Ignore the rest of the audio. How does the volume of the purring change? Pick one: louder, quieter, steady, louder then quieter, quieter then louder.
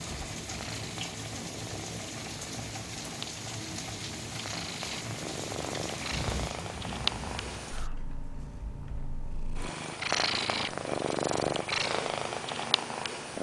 louder.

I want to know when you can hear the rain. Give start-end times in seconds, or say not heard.
0.0-7.9.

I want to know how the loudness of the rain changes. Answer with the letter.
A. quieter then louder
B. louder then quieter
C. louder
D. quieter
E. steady
E.